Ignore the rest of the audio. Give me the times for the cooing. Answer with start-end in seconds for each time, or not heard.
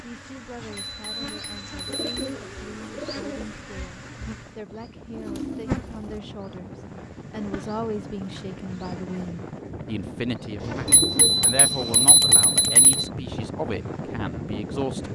1.9-3.5, 5.1-6.2, 10.6-12.1.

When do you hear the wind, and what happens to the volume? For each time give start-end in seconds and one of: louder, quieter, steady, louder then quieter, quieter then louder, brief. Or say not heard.
3.5-15.0 louder.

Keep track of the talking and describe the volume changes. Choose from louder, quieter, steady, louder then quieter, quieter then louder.
louder.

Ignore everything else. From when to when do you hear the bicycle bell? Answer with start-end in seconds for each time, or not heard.
0.7-2.4, 10.8-13.1.